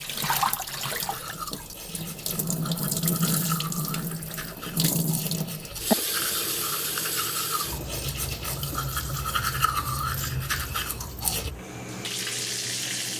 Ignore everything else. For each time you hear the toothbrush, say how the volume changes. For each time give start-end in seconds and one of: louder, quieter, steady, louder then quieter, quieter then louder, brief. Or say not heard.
1.1-11.5 louder.